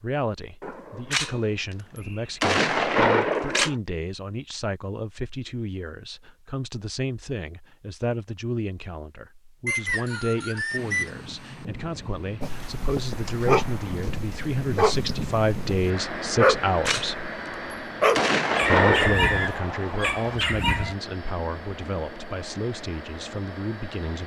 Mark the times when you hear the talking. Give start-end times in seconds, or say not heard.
0.0-17.3, 18.6-24.2.